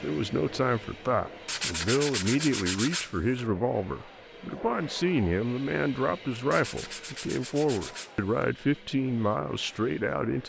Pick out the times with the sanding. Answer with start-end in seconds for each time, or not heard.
1.4-3.5, 6.5-8.5.